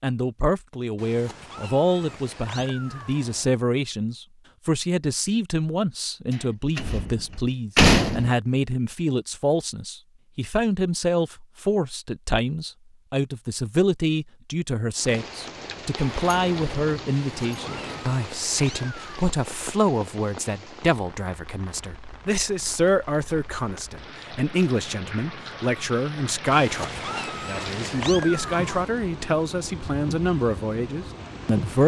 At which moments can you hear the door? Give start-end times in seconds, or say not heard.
6.8-8.3, 16.0-18.1.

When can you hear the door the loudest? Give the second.
8 s.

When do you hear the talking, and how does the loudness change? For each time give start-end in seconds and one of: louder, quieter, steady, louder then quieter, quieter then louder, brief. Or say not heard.
0.0-31.8 steady.